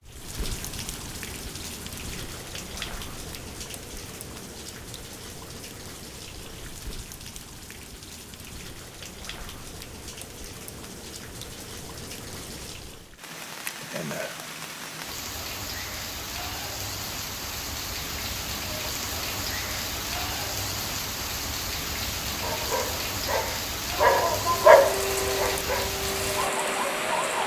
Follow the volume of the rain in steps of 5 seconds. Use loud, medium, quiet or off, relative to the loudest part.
medium, medium, medium, loud, loud, loud.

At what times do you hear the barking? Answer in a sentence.
The barking can be heard from 22.3 to 27.4 s.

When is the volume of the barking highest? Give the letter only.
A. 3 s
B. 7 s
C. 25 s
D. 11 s
C.